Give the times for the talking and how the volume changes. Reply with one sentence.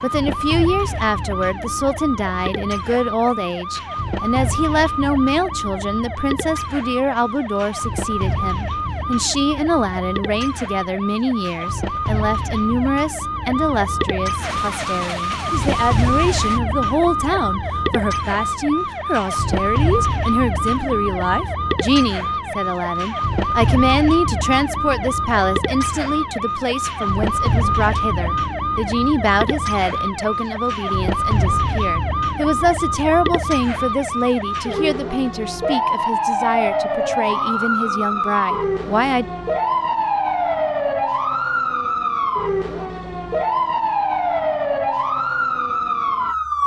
The talking can be heard from 0.0 to 39.2 s, at a steady volume.